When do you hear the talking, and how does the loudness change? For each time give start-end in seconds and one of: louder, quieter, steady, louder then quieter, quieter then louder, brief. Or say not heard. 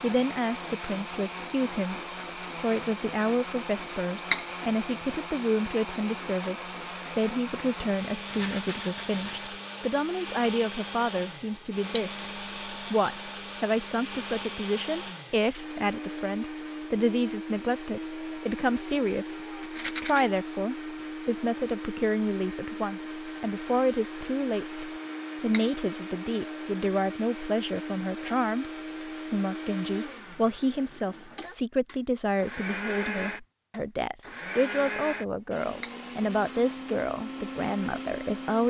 0.0-1.9 brief
2.5-38.6 steady.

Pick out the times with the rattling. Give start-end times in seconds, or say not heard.
8.2-9.5, 19.6-20.2.